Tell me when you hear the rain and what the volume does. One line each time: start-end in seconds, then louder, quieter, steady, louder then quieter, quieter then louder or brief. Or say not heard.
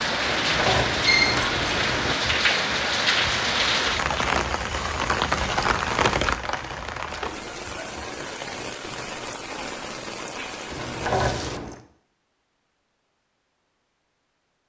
0.0-11.6 quieter.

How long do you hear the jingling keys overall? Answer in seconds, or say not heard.
3 s.